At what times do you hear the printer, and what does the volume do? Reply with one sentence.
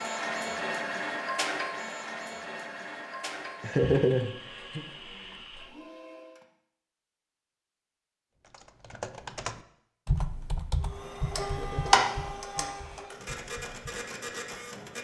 The printer can be heard from 0.0 to 6.5 s, getting quieter; and from 10.8 to 14.9 s, getting louder then quieter.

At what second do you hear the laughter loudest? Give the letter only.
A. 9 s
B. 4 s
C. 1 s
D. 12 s
B.